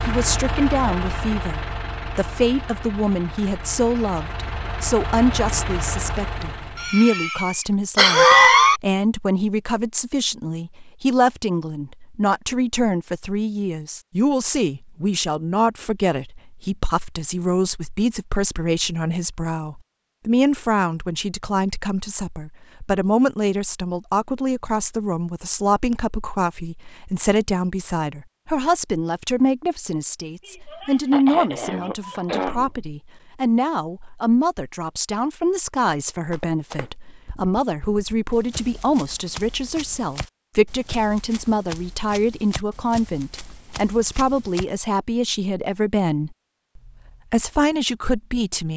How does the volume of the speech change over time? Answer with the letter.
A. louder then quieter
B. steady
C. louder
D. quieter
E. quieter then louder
B.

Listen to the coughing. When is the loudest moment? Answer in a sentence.
The loudest moment of the coughing is at 8 seconds.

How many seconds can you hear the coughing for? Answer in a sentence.
The coughing can be heard for 4 seconds in total.